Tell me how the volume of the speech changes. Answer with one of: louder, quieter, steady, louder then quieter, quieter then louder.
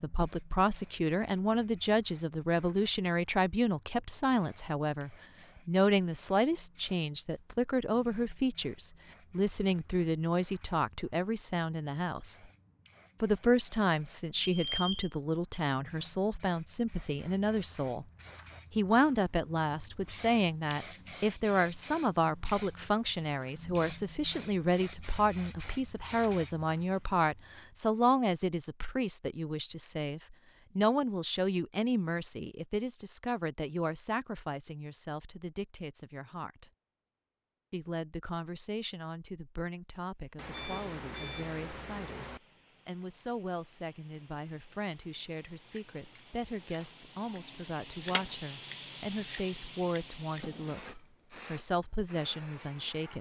quieter.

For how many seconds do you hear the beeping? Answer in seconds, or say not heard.
3 s.